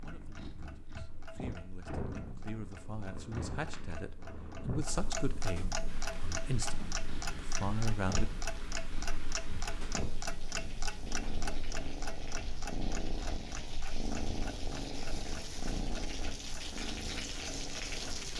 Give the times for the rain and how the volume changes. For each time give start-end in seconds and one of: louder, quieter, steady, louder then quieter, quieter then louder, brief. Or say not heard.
5.8-18.3 louder.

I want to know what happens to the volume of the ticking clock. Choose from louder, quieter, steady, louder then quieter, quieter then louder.
louder then quieter.